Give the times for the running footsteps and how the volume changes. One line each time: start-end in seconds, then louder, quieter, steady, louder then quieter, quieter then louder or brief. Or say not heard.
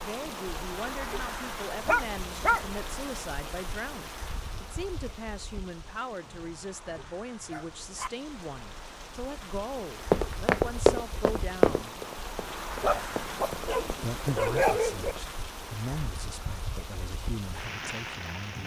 10.1-15.2 quieter then louder.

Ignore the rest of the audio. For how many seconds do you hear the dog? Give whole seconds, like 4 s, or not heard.
5 s.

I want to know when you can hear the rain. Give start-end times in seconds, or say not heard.
0.0-18.6.